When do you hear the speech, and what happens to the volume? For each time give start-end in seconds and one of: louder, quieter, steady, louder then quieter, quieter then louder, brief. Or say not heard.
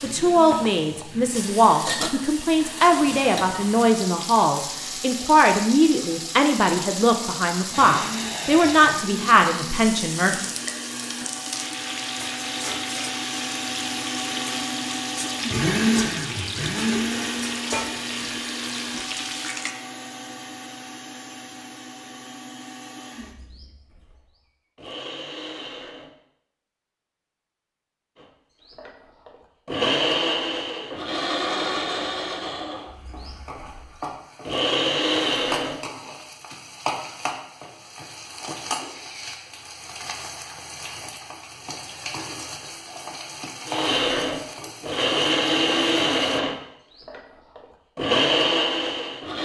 0.0-10.3 steady.